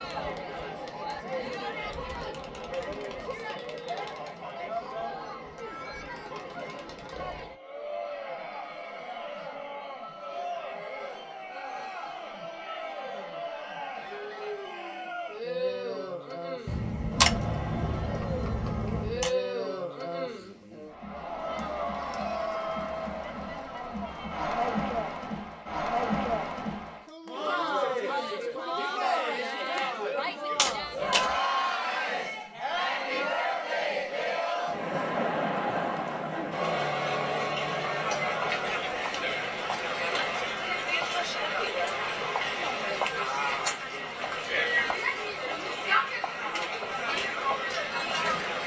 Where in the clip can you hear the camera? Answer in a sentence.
The camera can be heard from 16.6 to 19.3 s and from 30.6 to 31.4 s.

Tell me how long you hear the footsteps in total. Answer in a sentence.
You can't hear the footsteps here.